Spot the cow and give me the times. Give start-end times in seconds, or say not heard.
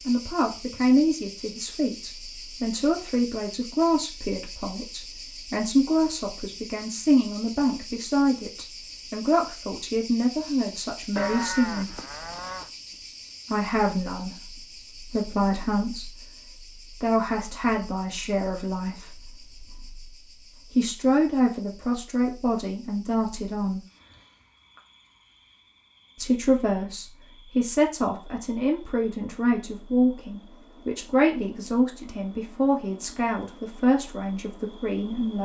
11.2-12.7.